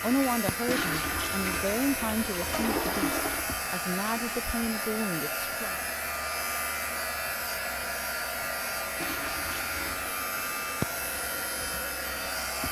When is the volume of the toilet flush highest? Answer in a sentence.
The loudest moment of the toilet flush is at 3 seconds.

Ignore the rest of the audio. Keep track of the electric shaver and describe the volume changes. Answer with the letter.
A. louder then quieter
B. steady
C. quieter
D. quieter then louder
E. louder
B.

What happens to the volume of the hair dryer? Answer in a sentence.
The loudness of the hair dryer stays about the same.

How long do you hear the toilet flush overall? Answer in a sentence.
You can hear the toilet flush for 4 seconds altogether.